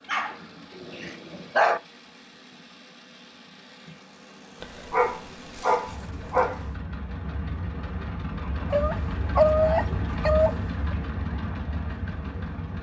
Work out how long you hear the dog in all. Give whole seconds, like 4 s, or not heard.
6 s.